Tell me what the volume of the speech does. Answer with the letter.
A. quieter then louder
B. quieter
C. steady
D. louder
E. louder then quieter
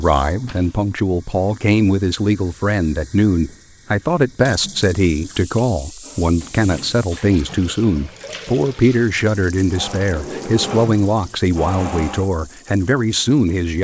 C.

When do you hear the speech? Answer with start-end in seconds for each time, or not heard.
0.0-13.7.